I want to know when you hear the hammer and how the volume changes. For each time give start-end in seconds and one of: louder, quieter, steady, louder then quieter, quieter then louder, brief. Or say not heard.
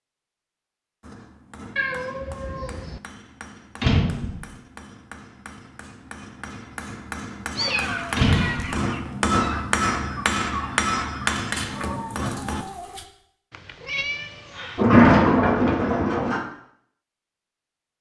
1.0-12.7 louder.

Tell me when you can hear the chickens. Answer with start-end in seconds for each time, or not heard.
7.5-13.1.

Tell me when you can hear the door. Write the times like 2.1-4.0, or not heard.
3.8-4.4, 8.2-8.8, 14.8-16.4.